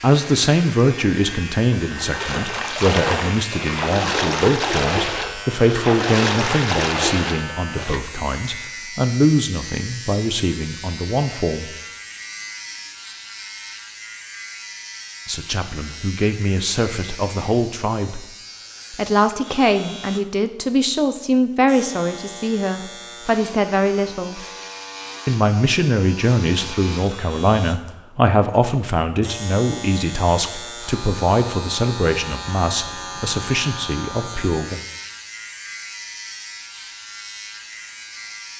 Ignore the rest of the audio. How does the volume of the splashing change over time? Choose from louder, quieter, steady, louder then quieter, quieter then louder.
louder.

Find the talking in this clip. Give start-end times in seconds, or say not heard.
0.0-11.7, 15.2-18.2, 18.9-24.4, 25.2-34.8.